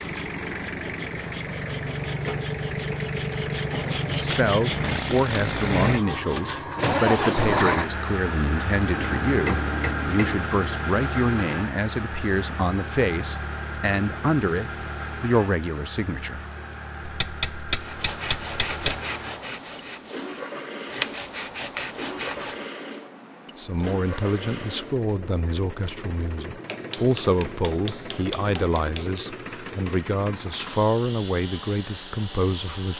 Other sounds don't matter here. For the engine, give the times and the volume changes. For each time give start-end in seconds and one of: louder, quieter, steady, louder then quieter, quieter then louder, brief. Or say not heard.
0.0-32.9 quieter.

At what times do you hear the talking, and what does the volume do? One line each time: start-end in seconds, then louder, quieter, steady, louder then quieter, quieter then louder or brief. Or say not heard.
4.0-16.4 steady
23.6-32.9 steady.